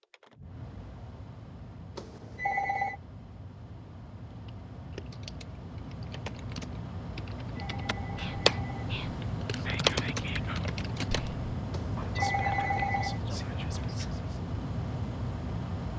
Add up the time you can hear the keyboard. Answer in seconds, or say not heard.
7 s.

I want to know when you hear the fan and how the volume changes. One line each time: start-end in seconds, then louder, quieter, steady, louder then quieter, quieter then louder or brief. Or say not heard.
0.0-15.9 louder.